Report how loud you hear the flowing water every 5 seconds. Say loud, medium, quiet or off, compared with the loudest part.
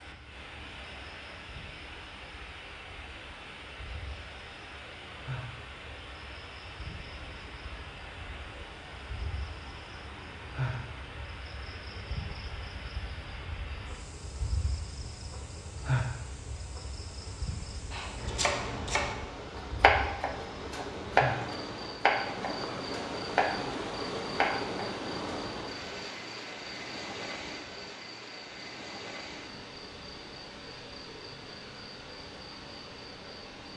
medium, medium, medium, medium, loud, loud, medium.